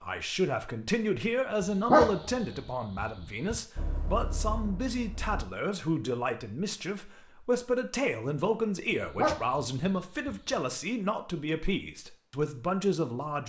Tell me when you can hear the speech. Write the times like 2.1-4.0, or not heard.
0.0-13.4.